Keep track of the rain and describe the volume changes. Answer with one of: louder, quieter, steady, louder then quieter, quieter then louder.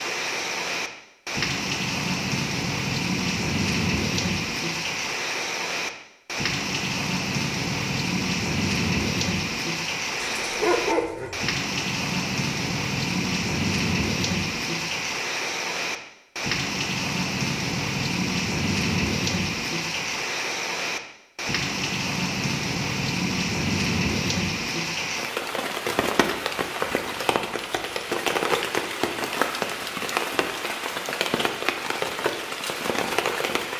steady.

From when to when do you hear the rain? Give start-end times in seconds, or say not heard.
0.0-33.7.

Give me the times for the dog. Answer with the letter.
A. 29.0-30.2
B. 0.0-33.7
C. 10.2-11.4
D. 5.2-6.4
C.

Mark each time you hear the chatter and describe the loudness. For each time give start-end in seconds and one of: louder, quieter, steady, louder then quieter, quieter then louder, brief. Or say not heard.
not heard.